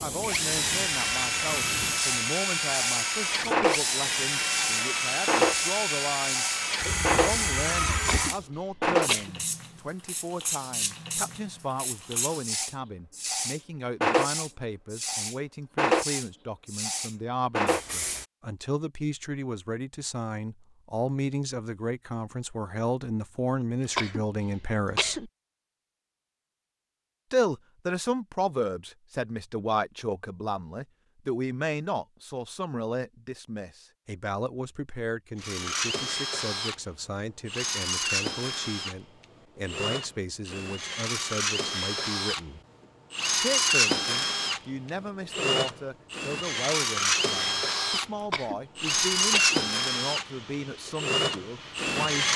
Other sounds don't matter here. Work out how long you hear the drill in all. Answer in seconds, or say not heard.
25 s.